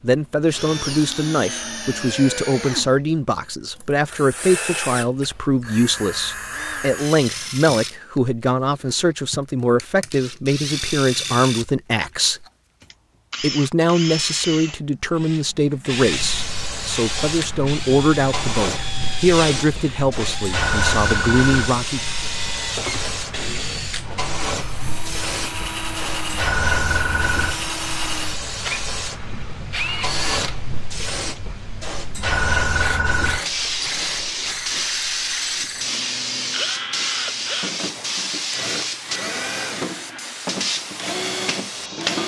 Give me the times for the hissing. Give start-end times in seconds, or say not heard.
15.9-42.2.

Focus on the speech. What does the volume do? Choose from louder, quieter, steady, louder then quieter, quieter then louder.
steady.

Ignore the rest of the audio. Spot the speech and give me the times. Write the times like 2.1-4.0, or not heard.
0.0-12.4, 13.4-22.1.